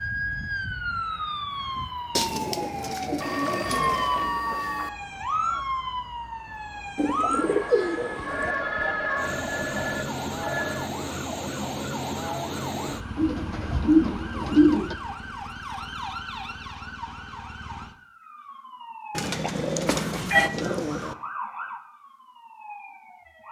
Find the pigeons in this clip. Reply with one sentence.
You can hear the pigeons from 2.1 to 4.1 s, from 7.0 to 8.6 s, from 13.2 to 14.9 s and from 19.1 to 21.1 s.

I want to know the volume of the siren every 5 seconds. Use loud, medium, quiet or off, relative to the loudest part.
loud, loud, loud, medium, medium.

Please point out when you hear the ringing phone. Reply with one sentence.
The ringing phone can be heard from 3.1 to 4.9 s, from 8.2 to 10.9 s and from 19.9 to 20.5 s.